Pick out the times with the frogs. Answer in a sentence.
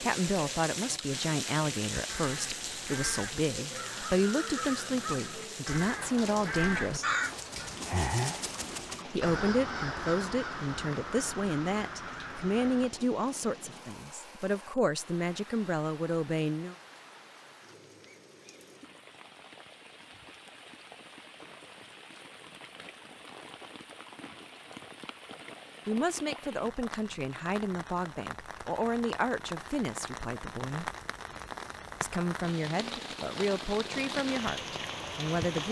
You can't hear the frogs here.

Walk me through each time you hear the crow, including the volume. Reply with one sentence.
The crow can be heard from 1.9 to 12.9 s, getting louder then quieter.